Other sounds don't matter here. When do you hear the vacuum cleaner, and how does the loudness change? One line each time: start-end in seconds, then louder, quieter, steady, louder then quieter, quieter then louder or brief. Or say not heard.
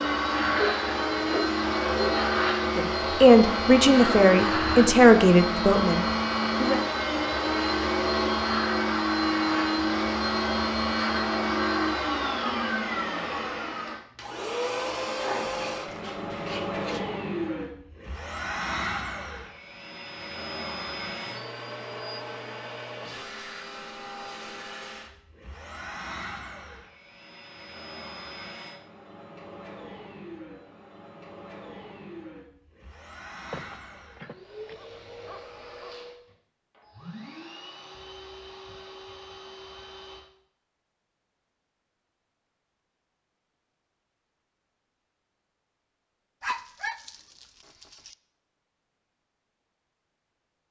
0.0-40.2 quieter.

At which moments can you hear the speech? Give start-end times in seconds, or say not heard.
2.8-6.8.